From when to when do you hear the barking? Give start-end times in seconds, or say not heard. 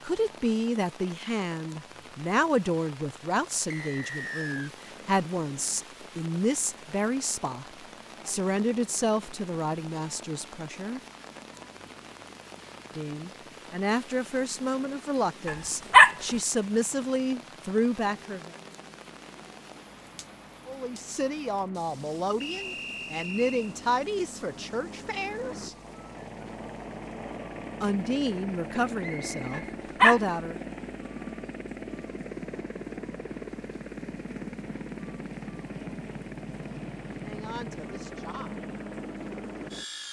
15.4-16.1, 29.5-30.2.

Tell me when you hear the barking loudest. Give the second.
16 s.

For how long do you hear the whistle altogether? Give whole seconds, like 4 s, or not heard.
3 s.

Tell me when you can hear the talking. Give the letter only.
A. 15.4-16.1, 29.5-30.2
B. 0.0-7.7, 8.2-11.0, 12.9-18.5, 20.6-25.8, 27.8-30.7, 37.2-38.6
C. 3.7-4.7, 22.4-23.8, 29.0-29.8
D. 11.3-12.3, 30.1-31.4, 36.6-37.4
B.